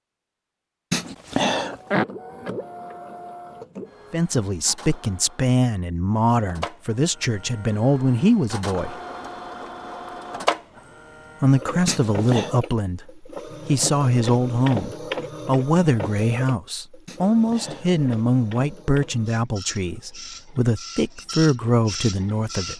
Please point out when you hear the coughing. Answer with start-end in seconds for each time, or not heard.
0.9-2.0, 11.8-12.6, 17.1-17.9.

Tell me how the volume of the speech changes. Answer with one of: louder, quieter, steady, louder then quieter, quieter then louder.
steady.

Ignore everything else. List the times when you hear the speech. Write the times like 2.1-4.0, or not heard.
4.1-8.9, 11.4-22.7.